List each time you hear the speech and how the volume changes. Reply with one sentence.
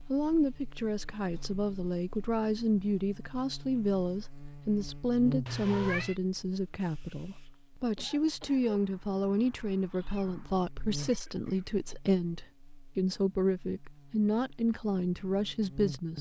You can hear the speech from 0.1 to 16.1 s, at a steady volume.